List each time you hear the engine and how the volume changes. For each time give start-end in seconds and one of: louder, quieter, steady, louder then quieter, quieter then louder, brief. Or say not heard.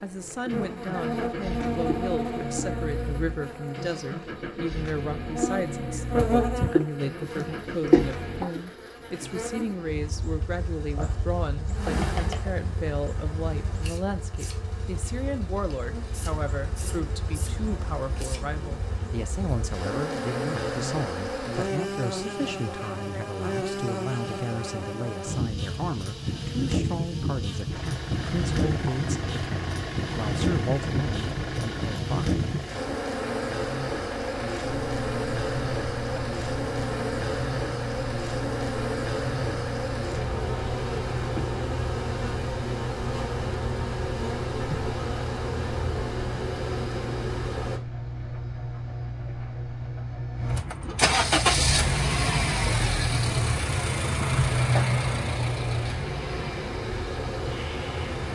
0.0-8.4 steady
27.7-58.3 louder.